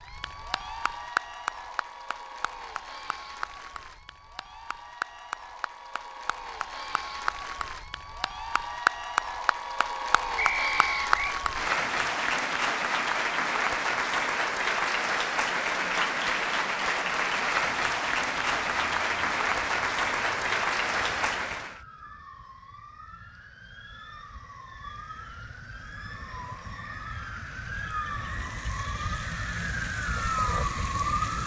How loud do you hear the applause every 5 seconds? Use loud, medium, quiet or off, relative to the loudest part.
medium, medium, loud, loud, loud, off, off.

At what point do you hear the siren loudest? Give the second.
31 s.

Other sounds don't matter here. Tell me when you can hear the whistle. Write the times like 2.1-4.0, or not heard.
10.3-11.4.